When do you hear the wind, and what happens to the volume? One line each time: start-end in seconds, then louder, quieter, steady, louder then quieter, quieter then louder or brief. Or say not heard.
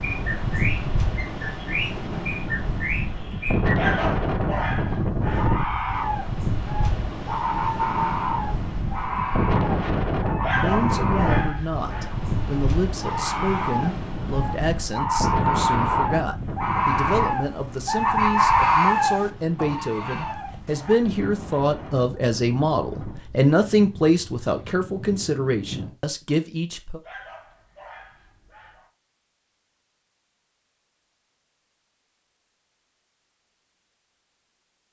0.0-25.9 quieter.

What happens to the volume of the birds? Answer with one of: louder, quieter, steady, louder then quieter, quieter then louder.
louder.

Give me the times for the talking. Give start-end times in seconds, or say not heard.
10.6-27.0.